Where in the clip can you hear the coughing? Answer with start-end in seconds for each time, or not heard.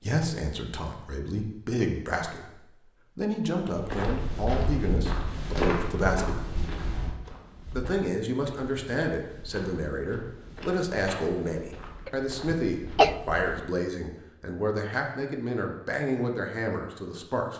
12.1-13.2.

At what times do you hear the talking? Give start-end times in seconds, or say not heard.
0.0-6.5, 7.7-17.5.